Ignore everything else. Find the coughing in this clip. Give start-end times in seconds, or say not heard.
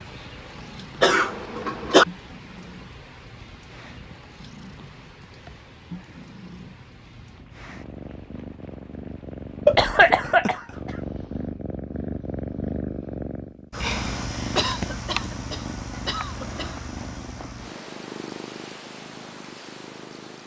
1.0-2.0, 9.7-10.9, 14.6-16.7.